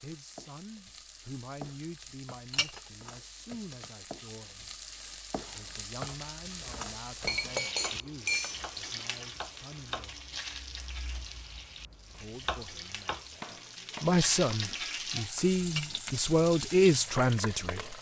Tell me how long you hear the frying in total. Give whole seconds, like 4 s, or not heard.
18 s.